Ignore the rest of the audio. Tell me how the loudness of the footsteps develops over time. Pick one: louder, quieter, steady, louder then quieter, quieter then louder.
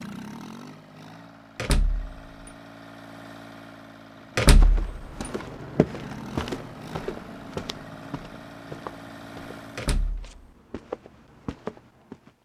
quieter then louder.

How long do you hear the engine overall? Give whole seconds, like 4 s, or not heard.
10 s.